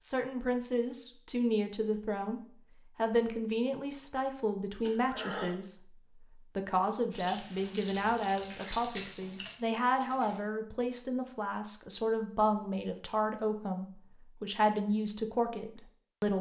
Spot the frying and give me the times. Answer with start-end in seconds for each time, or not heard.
7.1-10.4.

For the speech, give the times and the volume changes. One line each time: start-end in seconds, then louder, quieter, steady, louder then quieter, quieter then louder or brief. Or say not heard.
0.0-16.3 steady.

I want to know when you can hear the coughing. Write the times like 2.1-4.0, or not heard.
4.8-5.5.